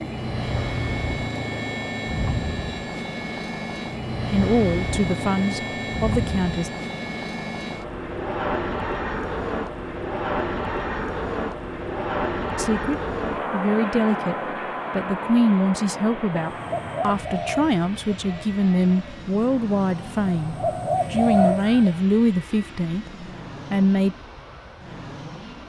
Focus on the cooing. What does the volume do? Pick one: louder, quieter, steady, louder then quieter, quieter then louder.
quieter then louder.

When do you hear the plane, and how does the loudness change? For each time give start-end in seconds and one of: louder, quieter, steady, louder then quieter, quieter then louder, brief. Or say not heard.
0.0-25.6 quieter.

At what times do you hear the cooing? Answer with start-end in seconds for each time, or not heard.
16.4-22.0.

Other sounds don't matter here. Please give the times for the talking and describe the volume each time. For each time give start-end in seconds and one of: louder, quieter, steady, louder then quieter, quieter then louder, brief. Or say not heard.
4.3-6.7 brief
12.6-24.1 steady.